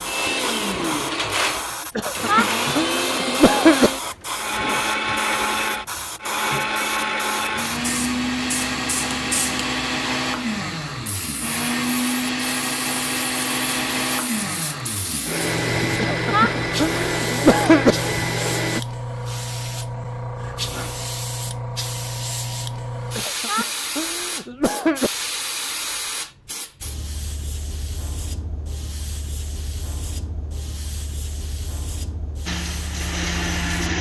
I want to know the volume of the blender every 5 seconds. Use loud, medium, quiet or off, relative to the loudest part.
loud, loud, loud, loud, off, off, loud.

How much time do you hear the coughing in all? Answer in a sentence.
The coughing can be heard for 6 seconds in total.